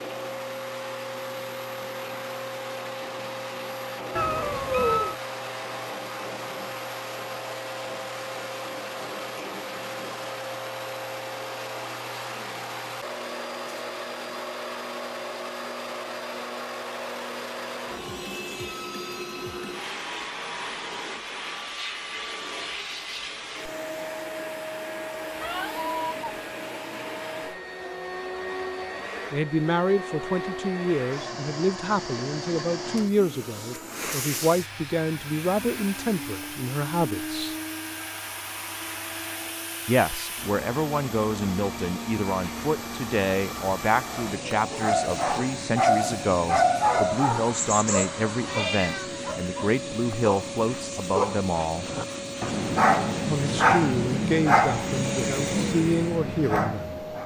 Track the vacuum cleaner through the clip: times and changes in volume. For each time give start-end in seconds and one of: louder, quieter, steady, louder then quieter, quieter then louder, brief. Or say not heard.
0.0-57.2 steady.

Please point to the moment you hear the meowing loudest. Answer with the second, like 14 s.
5 s.